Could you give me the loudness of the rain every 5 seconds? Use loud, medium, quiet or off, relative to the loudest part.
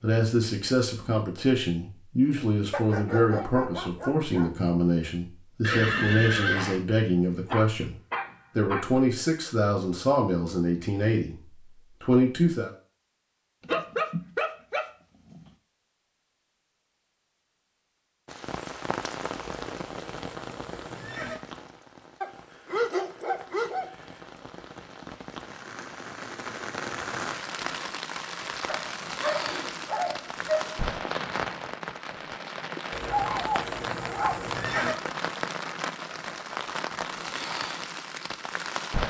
off, off, off, loud, medium, loud, loud, loud.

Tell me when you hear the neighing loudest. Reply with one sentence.
The loudest moment of the neighing is at 6 seconds.